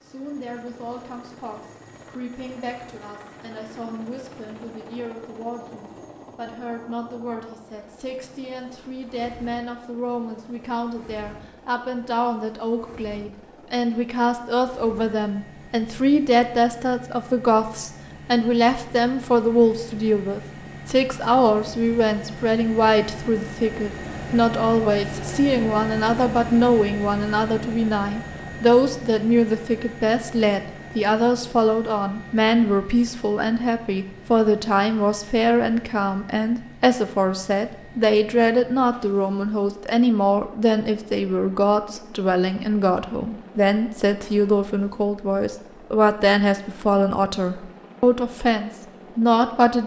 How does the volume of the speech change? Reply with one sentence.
The volume of the speech goes up.